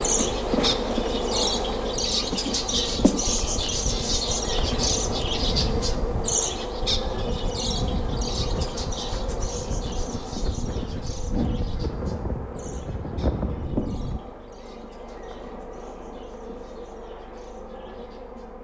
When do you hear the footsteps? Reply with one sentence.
You can't hear the footsteps here.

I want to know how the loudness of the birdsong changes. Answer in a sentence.
The loudness of the birdsong goes down.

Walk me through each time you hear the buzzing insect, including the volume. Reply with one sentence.
The buzzing insect can be heard from 0.0 to 18.5 s, getting quieter.